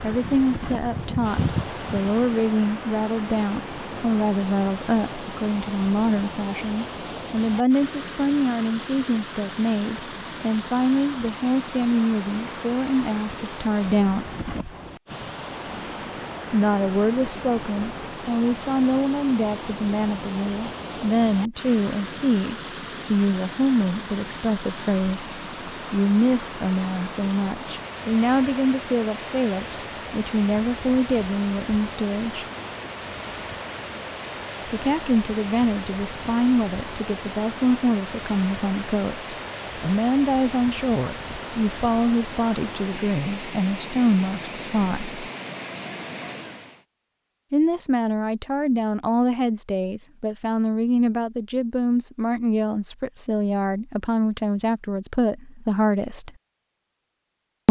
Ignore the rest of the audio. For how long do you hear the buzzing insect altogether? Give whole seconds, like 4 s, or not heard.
2 s.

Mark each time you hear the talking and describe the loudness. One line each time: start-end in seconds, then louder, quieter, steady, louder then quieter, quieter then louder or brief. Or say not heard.
0.0-14.2 steady
16.5-32.5 steady
34.6-45.1 steady
47.5-56.3 steady.